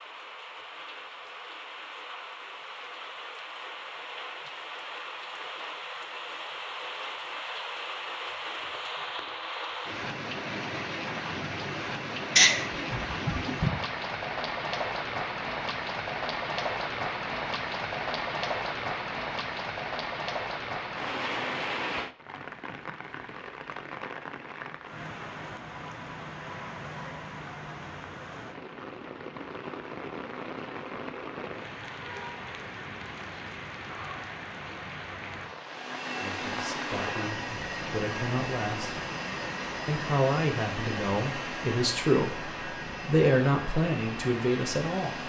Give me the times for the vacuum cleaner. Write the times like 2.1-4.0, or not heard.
35.5-45.2.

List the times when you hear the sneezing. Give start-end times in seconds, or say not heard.
12.3-13.8.